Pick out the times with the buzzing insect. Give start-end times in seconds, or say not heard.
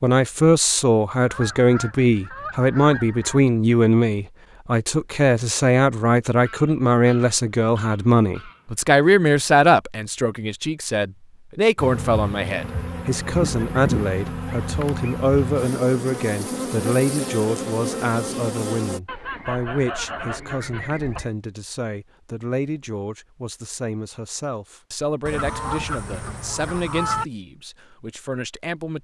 11.8-19.0.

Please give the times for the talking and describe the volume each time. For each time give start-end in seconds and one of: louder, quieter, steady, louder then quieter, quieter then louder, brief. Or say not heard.
0.0-28.9 quieter.